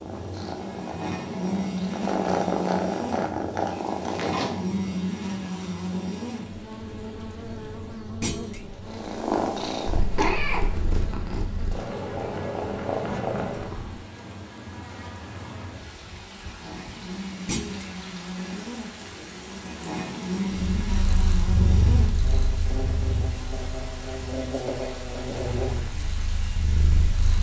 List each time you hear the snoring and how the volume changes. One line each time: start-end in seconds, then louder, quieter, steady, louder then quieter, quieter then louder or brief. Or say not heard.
not heard.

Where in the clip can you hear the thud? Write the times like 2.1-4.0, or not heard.
8.2-8.7, 17.4-17.9.